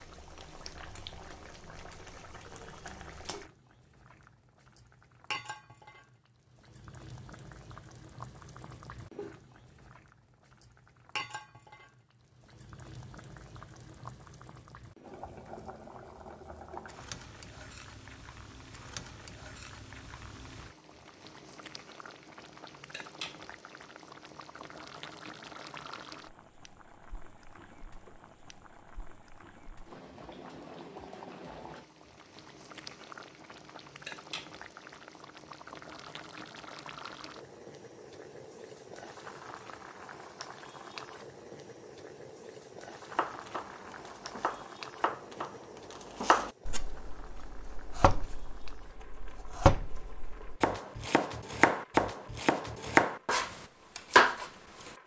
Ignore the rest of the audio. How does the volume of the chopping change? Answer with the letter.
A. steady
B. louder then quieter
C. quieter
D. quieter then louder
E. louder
E.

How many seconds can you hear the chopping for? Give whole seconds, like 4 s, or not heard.
12 s.